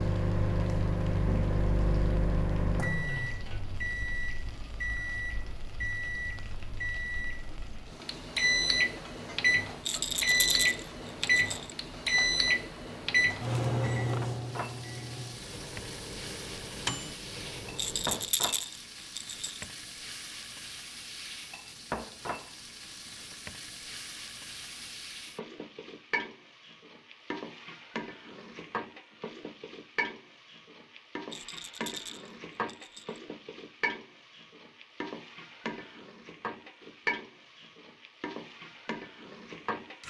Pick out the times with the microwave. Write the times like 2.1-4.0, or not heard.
0.0-18.3.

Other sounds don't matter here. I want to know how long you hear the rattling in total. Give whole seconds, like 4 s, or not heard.
6 s.